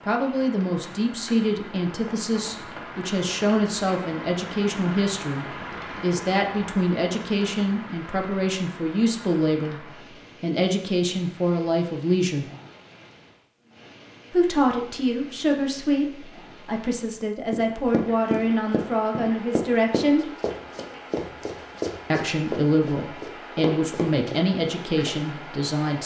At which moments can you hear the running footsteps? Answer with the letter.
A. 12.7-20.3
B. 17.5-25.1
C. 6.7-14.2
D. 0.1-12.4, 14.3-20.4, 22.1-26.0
B.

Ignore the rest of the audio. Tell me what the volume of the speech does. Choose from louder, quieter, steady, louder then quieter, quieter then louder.
steady.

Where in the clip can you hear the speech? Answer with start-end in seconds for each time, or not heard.
0.1-12.4, 14.3-20.4, 22.1-26.0.